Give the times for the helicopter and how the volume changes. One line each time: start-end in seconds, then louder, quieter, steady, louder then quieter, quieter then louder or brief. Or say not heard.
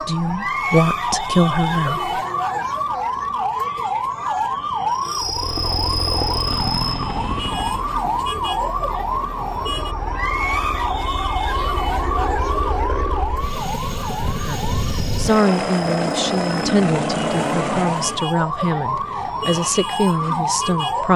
5.2-18.3 quieter then louder.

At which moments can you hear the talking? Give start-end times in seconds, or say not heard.
0.0-2.1, 14.3-21.1.